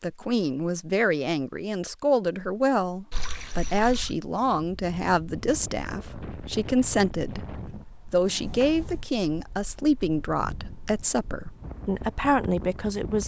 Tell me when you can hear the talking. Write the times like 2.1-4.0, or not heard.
0.0-13.2.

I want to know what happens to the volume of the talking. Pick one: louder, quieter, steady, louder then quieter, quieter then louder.
steady.